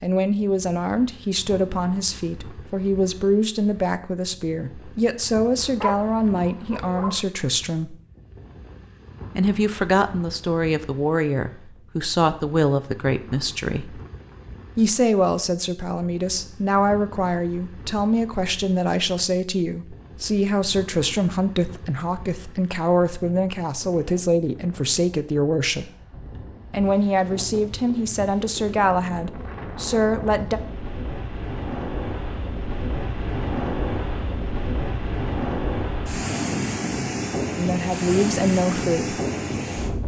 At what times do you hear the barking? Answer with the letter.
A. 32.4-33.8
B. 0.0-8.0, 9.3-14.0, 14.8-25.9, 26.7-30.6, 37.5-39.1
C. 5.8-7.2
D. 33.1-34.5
C.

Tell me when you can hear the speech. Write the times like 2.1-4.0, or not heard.
0.0-8.0, 9.3-14.0, 14.8-25.9, 26.7-30.6, 37.5-39.1.